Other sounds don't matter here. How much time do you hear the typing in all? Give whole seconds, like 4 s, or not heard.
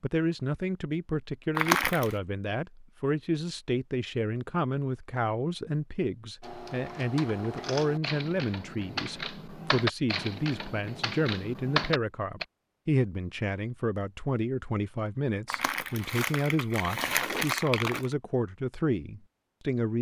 6 s.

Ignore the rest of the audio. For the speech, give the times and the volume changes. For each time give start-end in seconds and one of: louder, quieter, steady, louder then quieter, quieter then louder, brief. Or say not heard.
0.0-19.9 steady.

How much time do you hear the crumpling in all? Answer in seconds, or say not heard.
3 s.